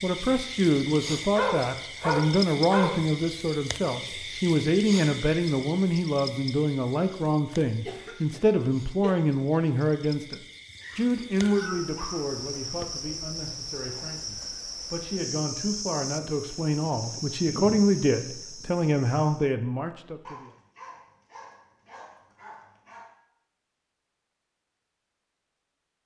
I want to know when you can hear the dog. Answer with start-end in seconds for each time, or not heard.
1.4-3.0, 10.8-12.4, 20.2-23.1.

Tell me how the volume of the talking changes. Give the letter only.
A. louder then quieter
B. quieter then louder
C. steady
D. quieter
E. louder
B.